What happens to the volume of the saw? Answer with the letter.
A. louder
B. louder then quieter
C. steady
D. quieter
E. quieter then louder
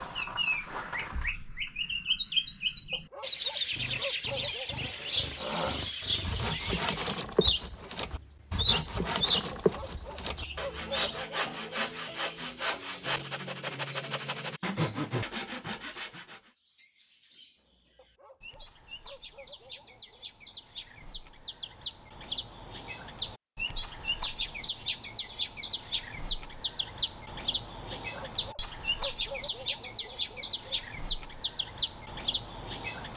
C.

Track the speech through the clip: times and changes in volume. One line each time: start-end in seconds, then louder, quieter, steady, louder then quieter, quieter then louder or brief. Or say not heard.
not heard.